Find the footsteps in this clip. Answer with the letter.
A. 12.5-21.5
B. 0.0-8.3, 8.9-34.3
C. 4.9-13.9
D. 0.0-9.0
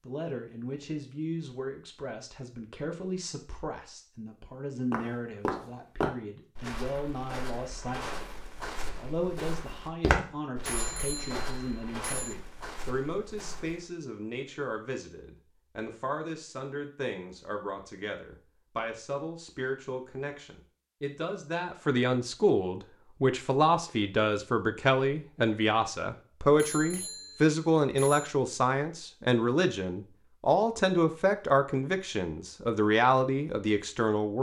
C.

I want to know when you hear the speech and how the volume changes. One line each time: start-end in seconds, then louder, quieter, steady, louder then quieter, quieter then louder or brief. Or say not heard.
0.0-8.3 steady
8.9-34.3 louder.